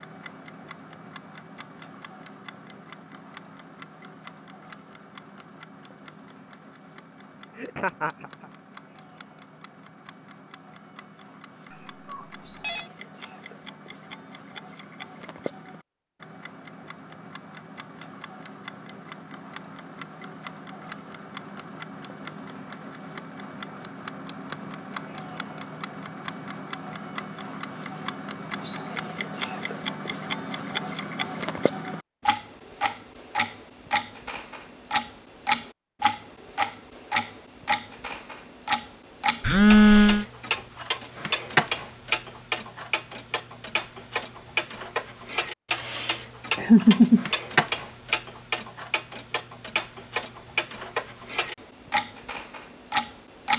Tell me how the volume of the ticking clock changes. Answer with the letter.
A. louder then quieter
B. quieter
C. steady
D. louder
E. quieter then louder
D.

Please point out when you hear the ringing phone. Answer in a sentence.
The ringing phone can be heard from 11.7 to 12.9 s and from 39.4 to 40.2 s.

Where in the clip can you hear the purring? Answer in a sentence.
The purring can't be heard in this clip.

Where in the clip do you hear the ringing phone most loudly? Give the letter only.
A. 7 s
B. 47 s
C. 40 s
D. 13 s
C.